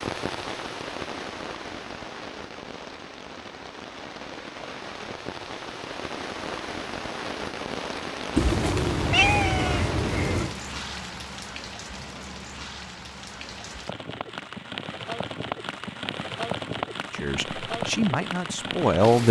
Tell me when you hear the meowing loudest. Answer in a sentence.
The loudest moment of the meowing is at 9 seconds.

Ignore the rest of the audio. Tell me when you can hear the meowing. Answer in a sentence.
You can hear the meowing from 8.3 to 10.6 s.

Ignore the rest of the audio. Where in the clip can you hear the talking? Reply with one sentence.
The talking can be heard from 17.2 to 19.2 s.